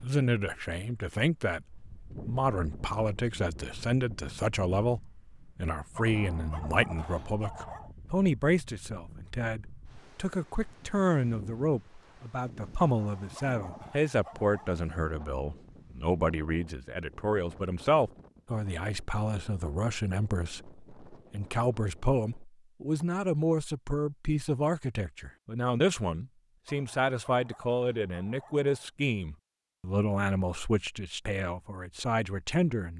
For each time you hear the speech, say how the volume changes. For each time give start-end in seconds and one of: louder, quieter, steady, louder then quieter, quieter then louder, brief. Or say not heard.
0.0-32.9 steady.